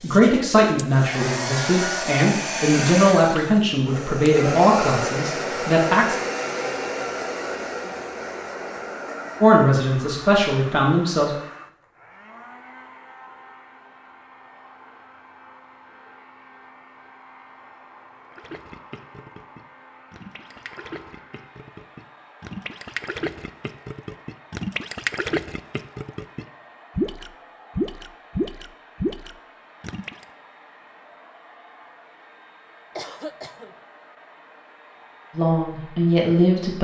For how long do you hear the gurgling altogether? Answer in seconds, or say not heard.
12 s.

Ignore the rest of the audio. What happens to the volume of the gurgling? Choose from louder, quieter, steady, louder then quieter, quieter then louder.
louder.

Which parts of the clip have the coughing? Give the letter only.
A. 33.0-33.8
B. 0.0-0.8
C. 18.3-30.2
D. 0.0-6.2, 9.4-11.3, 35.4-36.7
A.